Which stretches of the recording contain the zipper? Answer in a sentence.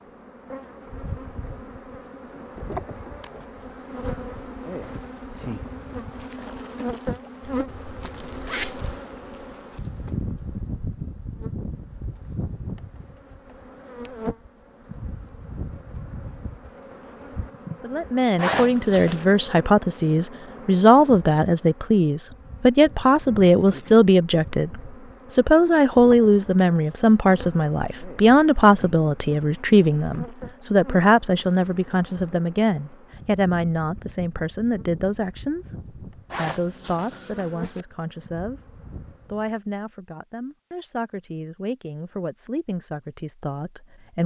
You can hear the zipper from 7.5 to 9.0 s, from 18.4 to 19.2 s and from 36.3 to 37.9 s.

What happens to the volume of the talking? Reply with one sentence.
The loudness of the talking goes down.